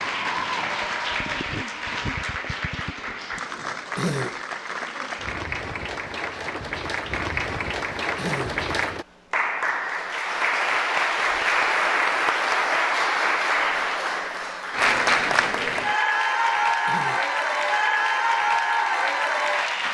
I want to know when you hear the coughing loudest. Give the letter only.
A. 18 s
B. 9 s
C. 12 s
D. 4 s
D.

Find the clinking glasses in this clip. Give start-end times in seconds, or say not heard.
not heard.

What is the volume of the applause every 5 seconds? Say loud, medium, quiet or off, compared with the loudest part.
medium, medium, loud, loud.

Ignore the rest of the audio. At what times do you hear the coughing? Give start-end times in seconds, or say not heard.
4.0-4.4, 8.2-8.7, 16.9-17.3.